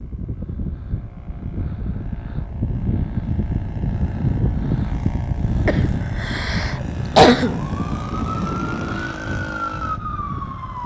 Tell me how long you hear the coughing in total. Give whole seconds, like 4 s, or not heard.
2 s.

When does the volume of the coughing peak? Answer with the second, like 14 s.
7 s.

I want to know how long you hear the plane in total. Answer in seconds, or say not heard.
11 s.